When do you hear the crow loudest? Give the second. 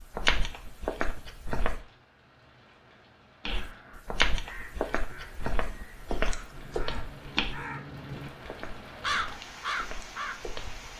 9 s.